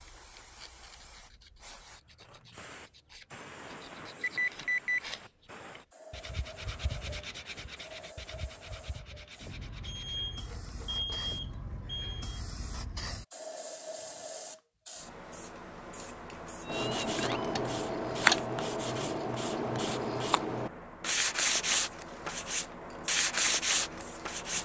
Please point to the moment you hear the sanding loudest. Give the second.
18 s.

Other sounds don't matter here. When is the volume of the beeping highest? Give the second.
5 s.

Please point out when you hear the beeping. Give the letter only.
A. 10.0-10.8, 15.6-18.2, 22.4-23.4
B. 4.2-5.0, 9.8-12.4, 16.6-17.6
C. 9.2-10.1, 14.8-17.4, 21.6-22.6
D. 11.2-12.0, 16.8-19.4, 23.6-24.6
B.